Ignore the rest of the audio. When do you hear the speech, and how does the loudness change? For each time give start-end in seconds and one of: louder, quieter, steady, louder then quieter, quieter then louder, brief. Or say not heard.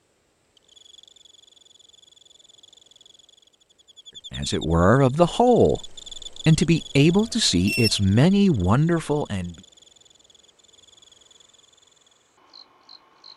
4.3-9.6 steady.